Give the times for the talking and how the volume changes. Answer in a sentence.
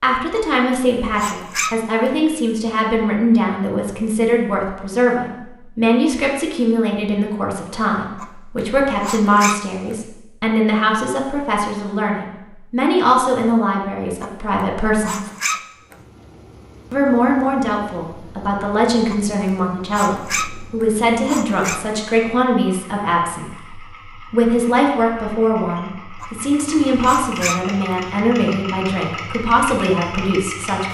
You can hear the talking from 0.0 to 15.3 s, at a steady volume; and from 16.9 to 30.8 s, at a steady volume.